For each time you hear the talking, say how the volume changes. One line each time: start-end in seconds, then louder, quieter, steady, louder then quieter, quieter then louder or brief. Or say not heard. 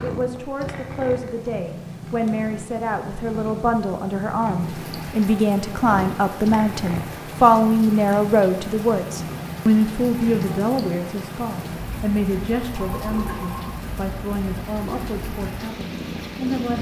0.0-16.7 louder then quieter.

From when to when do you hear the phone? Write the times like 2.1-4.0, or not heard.
12.8-13.8.